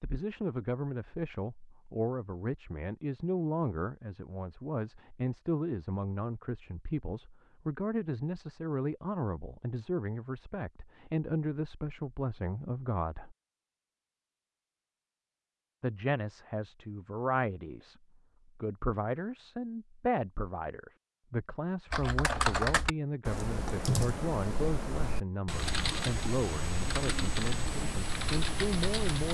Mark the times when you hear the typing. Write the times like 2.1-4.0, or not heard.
21.9-29.3.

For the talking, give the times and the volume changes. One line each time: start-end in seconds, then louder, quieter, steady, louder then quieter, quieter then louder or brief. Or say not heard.
0.0-13.3 steady
15.8-29.3 steady.